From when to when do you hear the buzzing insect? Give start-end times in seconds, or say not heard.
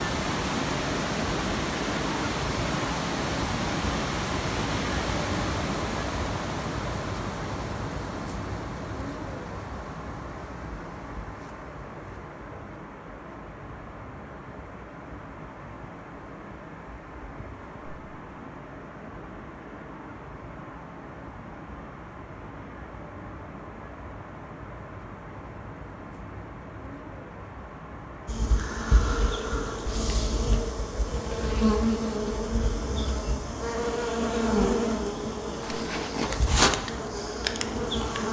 28.2-38.2.